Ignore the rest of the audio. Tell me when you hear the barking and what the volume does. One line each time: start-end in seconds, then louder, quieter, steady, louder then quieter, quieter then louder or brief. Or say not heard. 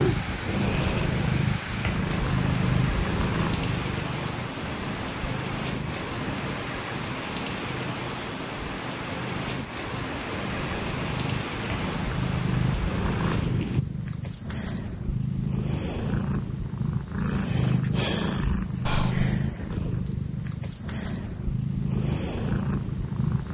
not heard.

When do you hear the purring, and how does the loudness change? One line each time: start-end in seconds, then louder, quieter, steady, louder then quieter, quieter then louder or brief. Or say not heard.
0.0-23.4 quieter then louder.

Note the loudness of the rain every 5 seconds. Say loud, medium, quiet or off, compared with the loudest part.
loud, loud, loud, off, off.